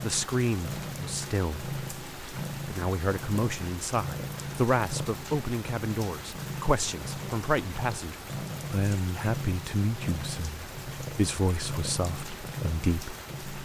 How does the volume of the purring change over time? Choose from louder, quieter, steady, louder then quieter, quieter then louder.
steady.